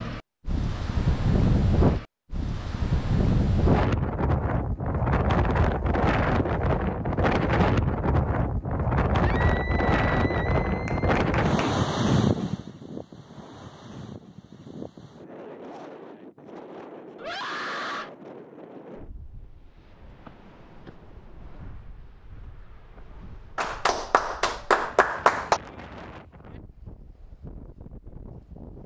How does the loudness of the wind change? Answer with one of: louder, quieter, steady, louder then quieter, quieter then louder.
quieter.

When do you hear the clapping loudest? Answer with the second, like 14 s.
25 s.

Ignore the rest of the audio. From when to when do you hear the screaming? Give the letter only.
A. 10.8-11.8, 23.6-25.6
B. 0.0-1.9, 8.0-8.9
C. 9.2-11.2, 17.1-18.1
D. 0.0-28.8
C.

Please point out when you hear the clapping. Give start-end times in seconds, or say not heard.
10.8-11.8, 23.6-25.6.